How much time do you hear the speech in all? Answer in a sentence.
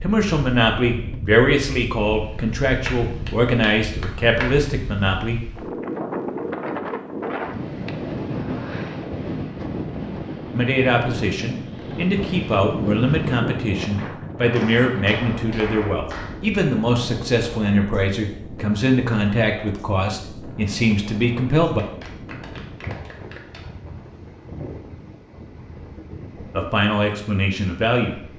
The speech can be heard for 19 seconds in total.